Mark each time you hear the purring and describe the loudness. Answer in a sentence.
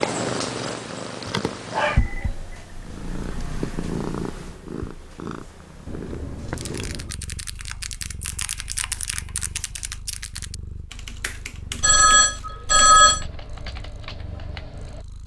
You can hear the purring from 0.0 to 15.2 s, getting quieter.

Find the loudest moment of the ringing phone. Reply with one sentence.
The loudest moment of the ringing phone is at 13 seconds.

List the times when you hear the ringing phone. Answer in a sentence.
The ringing phone can be heard from 1.2 to 2.3 s, from 5.8 to 7.2 s and from 11.8 to 13.2 s.